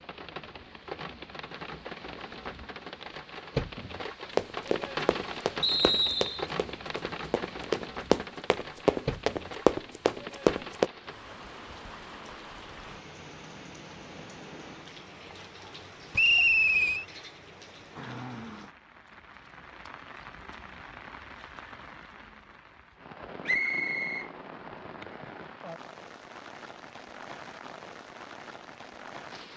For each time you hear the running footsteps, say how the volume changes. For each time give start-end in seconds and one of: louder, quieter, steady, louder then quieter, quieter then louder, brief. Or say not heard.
4.3-10.9 louder.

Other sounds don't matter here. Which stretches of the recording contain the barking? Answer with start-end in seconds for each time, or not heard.
not heard.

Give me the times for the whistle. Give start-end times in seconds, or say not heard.
5.6-6.5, 16.1-17.1, 23.4-24.2.